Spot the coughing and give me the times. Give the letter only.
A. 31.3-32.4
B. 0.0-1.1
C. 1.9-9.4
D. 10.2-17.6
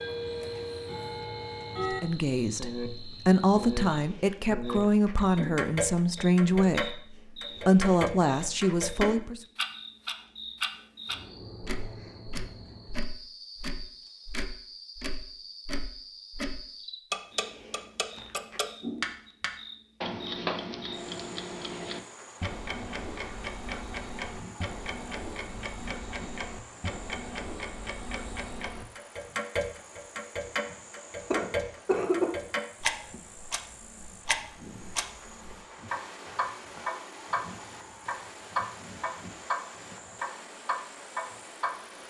A.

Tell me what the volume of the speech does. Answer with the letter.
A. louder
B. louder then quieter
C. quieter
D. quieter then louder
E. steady
E.